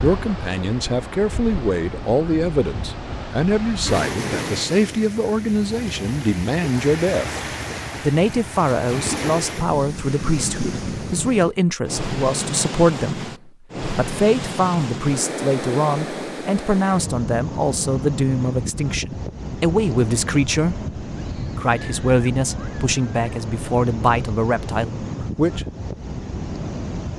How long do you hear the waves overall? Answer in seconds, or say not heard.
27 s.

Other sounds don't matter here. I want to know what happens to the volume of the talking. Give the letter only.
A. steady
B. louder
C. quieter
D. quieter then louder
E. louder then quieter
A.